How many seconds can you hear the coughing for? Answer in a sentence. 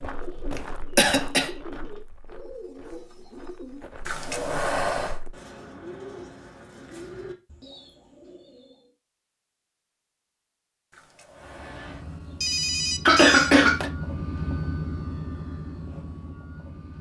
You can hear the coughing for 2 seconds altogether.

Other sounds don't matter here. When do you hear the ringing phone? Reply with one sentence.
The ringing phone can be heard from 4.0 to 5.2 s and from 10.9 to 13.6 s.